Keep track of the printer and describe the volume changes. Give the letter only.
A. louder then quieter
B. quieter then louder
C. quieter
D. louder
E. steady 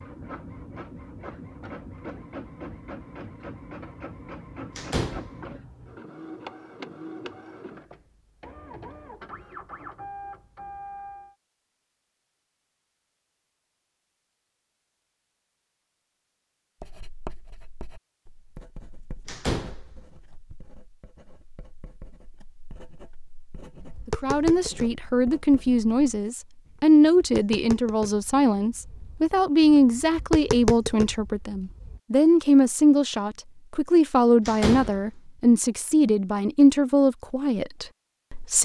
E.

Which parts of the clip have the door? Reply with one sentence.
You can hear the door from 4.8 to 5.3 s, from 19.2 to 19.9 s and from 34.5 to 35.0 s.